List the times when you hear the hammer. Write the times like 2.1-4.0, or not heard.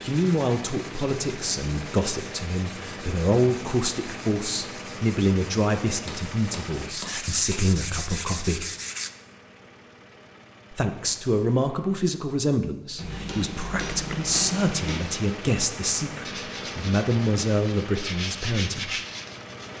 6.0-7.8, 12.9-15.0.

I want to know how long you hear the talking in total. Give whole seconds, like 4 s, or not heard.
17 s.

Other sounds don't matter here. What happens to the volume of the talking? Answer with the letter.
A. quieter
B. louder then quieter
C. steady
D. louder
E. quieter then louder
C.